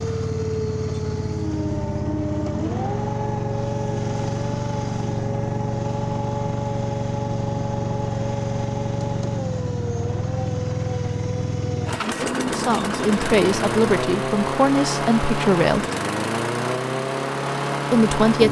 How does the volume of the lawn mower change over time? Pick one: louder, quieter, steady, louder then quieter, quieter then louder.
steady.